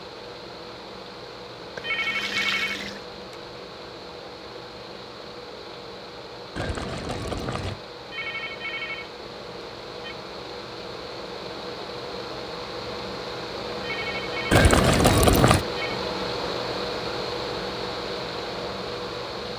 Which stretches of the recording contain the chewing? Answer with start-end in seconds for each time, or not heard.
not heard.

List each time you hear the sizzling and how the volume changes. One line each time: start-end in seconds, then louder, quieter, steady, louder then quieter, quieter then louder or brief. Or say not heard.
not heard.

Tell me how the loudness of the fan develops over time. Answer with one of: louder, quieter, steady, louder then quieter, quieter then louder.
louder.